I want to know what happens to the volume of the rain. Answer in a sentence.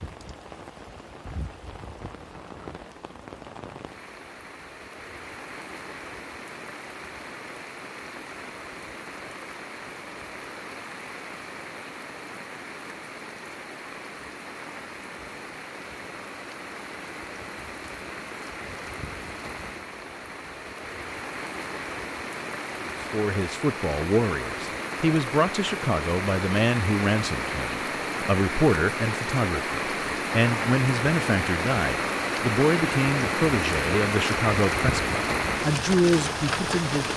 The loudness of the rain goes up.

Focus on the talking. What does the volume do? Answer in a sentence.
The volume of the talking stays about the same.